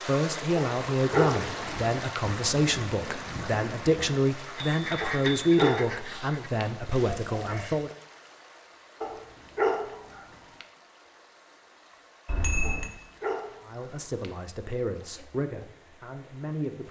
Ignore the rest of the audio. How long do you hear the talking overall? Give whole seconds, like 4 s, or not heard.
11 s.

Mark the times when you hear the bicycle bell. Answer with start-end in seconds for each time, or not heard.
4.5-5.5, 12.2-12.9.